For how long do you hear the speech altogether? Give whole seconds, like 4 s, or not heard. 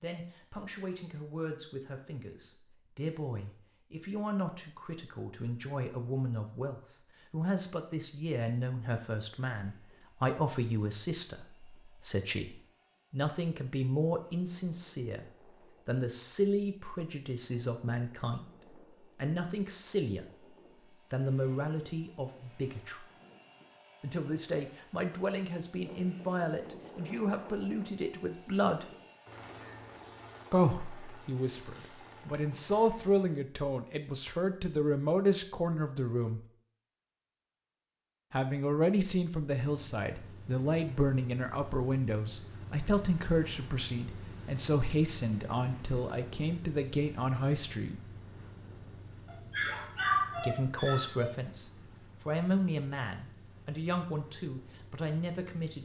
48 s.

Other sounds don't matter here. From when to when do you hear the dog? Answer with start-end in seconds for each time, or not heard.
49.2-51.3.